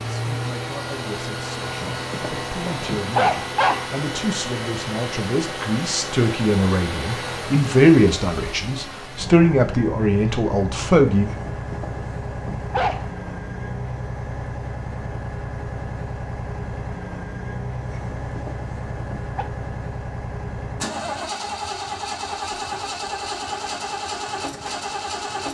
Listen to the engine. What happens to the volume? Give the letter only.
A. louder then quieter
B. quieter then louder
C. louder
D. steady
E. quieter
D.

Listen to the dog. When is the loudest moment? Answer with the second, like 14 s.
3 s.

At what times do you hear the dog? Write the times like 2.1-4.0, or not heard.
1.6-3.9, 11.2-13.1, 17.9-19.4.